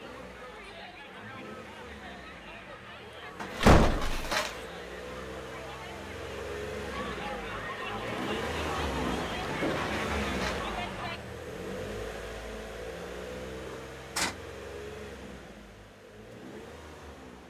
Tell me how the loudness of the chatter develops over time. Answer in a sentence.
The volume of the chatter goes up.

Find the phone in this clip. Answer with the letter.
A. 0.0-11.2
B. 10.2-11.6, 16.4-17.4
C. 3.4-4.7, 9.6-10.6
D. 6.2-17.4
C.